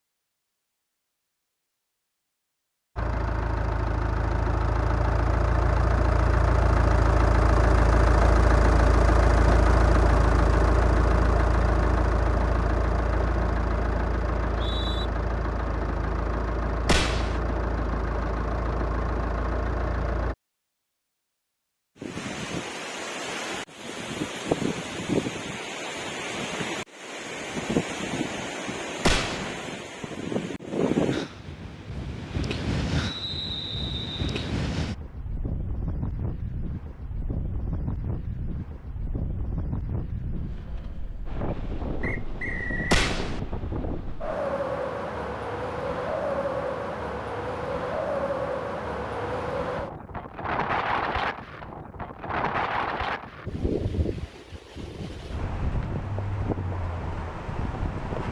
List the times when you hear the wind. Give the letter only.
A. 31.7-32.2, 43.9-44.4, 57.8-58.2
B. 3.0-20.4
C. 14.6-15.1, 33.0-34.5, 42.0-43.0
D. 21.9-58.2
D.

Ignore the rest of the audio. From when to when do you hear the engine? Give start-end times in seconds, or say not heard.
3.0-20.4.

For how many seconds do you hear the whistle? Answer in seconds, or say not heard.
3 s.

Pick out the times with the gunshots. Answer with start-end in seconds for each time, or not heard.
16.9-17.4, 29.1-29.6, 42.9-43.4.